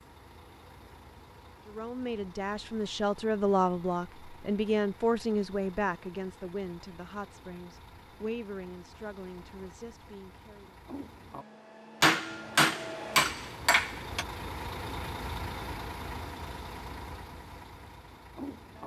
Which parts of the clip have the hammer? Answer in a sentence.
The hammer can be heard from 12.0 to 14.2 s.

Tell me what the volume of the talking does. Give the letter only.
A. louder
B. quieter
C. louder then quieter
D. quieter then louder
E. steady
B.